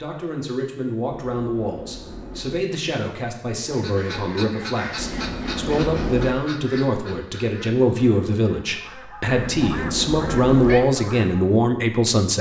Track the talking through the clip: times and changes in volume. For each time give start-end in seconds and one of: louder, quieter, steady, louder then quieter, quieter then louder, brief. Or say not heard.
0.0-12.3 louder.